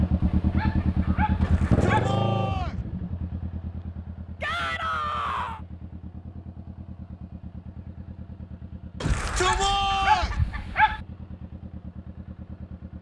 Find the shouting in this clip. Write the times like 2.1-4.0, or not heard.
1.4-2.8, 4.4-5.6, 9.0-10.3.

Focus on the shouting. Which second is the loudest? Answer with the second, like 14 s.
10 s.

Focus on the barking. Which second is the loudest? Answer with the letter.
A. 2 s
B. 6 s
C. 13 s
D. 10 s
D.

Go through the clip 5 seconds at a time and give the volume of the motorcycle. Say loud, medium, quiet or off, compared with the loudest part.
loud, quiet, quiet.